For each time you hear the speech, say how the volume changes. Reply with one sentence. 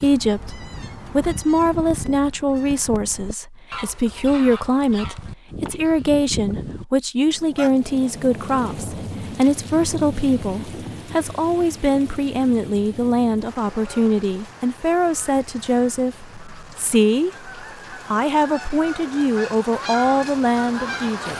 You can hear the speech from 0.0 to 21.3 s, at a steady volume.